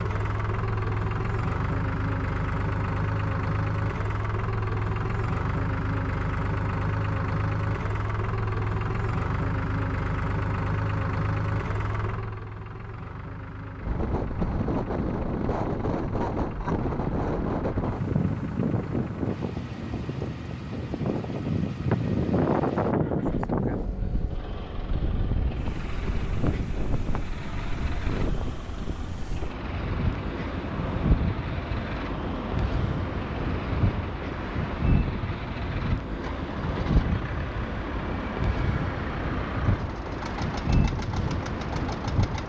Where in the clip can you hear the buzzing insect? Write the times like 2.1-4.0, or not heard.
not heard.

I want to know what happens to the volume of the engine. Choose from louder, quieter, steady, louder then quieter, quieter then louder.
quieter.